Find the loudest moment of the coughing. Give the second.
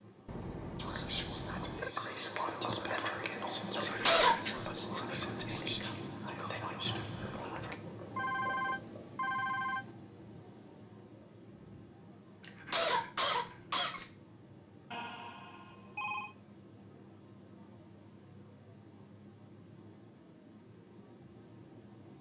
4 s.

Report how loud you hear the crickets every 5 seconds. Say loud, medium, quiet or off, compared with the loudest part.
loud, loud, medium, medium, medium.